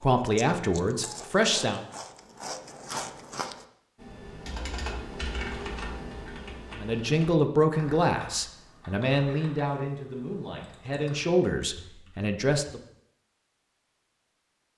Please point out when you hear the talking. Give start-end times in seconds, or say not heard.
0.0-1.8, 6.7-12.8.